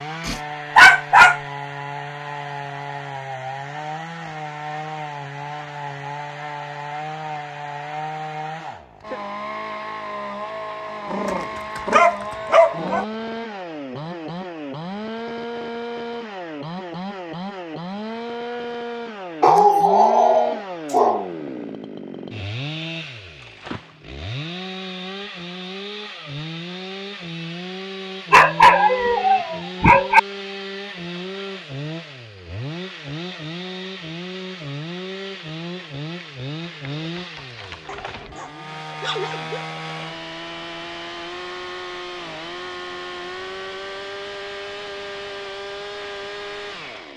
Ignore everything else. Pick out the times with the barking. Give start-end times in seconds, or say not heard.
0.2-1.4, 11.1-13.1, 19.4-21.2, 28.3-30.2, 37.9-39.6.